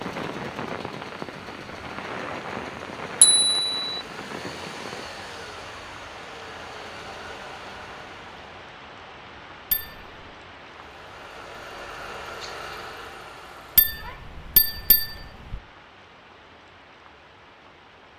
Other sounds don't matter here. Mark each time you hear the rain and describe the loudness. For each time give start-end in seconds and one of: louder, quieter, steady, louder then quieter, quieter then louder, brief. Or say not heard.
0.0-18.1 quieter.